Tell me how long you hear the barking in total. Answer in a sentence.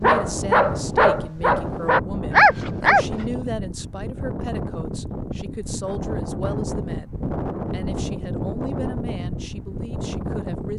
You can hear the barking for 3 seconds altogether.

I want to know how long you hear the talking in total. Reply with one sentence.
The talking can be heard for 11 seconds in total.